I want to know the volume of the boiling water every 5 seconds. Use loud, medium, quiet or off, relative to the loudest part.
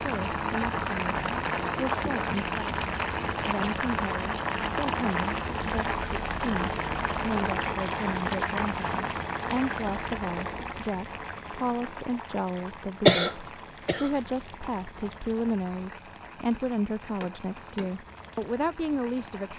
loud, loud, medium, quiet.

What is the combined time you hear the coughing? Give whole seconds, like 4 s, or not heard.
2 s.